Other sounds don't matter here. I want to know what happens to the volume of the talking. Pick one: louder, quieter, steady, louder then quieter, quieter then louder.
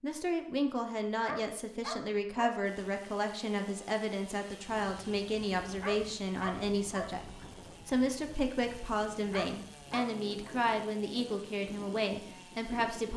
steady.